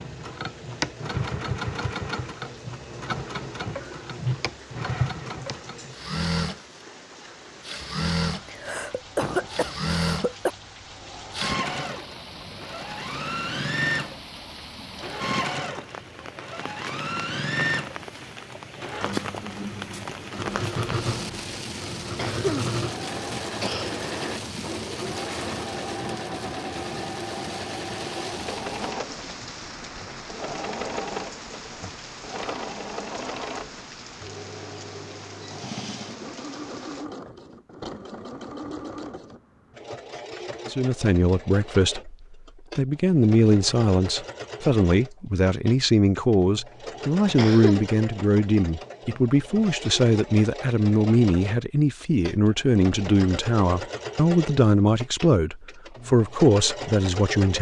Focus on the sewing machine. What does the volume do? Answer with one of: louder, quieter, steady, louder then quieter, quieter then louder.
quieter.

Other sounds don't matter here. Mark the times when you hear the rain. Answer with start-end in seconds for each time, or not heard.
0.0-37.0.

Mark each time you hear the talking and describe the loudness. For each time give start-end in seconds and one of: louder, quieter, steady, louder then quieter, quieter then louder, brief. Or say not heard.
40.6-57.5 steady.